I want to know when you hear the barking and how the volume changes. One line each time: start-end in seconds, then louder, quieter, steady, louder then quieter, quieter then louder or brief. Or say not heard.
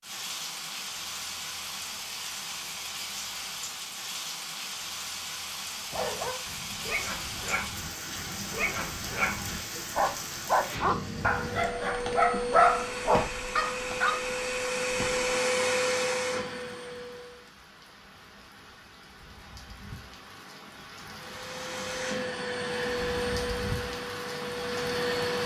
5.9-14.2 louder.